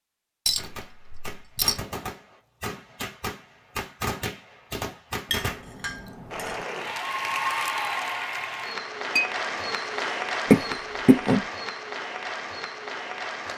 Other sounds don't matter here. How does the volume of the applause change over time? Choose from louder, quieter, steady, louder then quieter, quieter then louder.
quieter.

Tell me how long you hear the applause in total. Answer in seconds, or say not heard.
7 s.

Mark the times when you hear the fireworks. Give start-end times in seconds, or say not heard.
0.5-5.7.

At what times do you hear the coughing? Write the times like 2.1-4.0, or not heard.
10.5-11.4.